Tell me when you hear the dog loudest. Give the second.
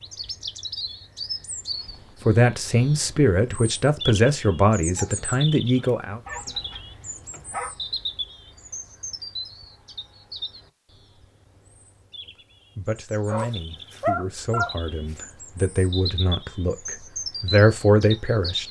14 s.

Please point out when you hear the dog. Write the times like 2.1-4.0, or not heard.
5.0-7.8, 13.2-15.2.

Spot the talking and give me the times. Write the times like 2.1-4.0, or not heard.
2.2-6.2, 12.8-18.6.